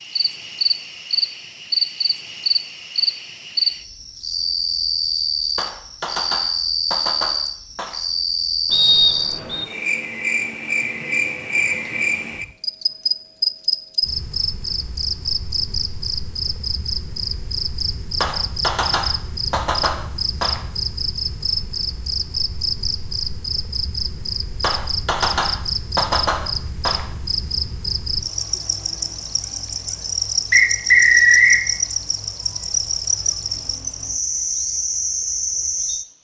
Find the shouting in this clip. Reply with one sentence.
The shouting can't be heard in this clip.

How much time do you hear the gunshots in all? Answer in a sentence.
You can hear the gunshots for 7 seconds altogether.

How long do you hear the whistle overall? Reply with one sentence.
You can hear the whistle for 2 seconds altogether.